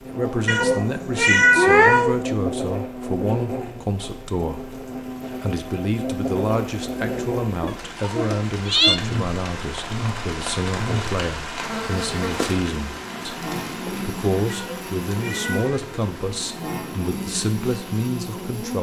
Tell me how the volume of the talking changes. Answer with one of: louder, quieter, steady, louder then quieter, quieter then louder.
steady.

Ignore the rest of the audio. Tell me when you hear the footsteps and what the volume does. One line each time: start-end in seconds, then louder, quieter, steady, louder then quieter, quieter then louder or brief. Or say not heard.
not heard.